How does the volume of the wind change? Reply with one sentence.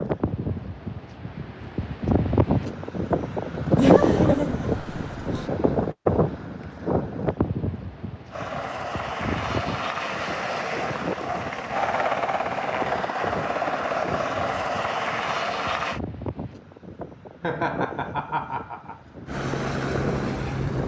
The loudness of the wind goes down.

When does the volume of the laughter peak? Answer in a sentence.
The loudest moment of the laughter is at 4 seconds.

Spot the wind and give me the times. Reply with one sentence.
The wind can be heard from 0.0 to 20.8 s.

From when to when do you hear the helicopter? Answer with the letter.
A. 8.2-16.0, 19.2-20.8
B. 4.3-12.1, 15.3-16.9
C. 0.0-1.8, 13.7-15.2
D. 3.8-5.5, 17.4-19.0
A.